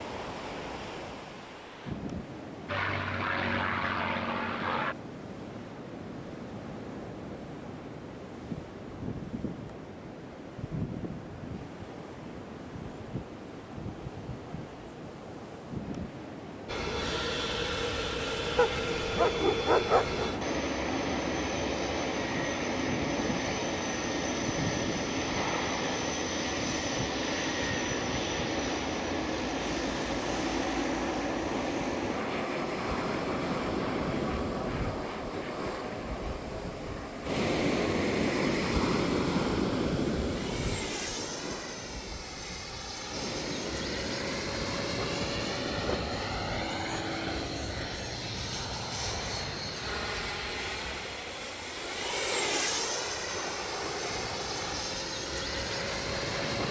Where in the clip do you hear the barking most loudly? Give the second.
20 s.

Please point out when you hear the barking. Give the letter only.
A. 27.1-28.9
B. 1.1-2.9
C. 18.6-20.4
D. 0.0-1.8
C.